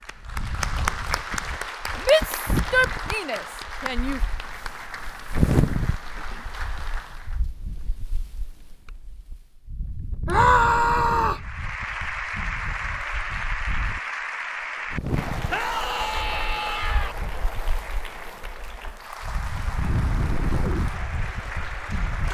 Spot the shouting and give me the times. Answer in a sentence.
You can hear the shouting from 2.0 to 4.2 s, from 10.2 to 11.4 s and from 15.4 to 17.1 s.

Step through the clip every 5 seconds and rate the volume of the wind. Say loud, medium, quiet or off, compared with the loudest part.
medium, loud, medium, medium, loud.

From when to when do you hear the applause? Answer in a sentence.
You can hear the applause from 0.0 to 7.4 s and from 11.3 to 22.2 s.